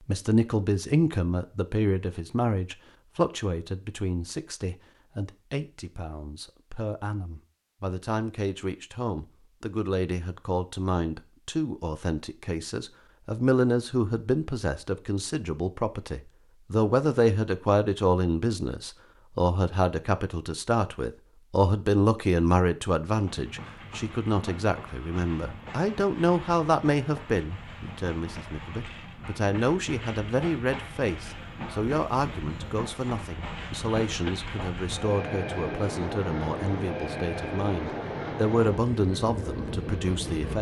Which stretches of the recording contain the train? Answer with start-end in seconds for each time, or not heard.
23.1-40.5.